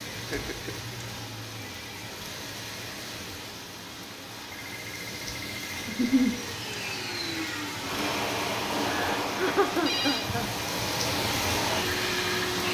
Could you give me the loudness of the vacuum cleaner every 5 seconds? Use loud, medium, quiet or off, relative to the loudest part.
off, loud, loud.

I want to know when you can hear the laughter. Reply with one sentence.
You can hear the laughter from 0.1 to 0.8 s, from 5.8 to 6.3 s and from 8.8 to 10.4 s.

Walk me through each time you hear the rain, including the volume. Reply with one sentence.
You can hear the rain from 0.0 to 12.6 s, getting louder.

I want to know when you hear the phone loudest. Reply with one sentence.
The loudest moment of the phone is at 10 seconds.